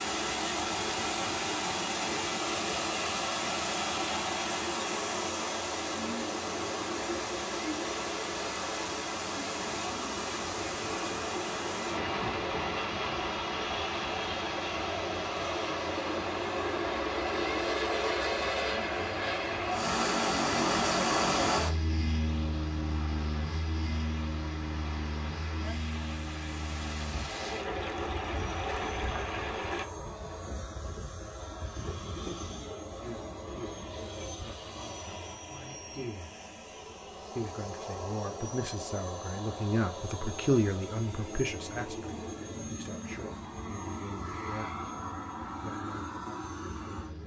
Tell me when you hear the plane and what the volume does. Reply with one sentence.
You can hear the plane from 0.0 to 47.2 s, getting louder then quieter.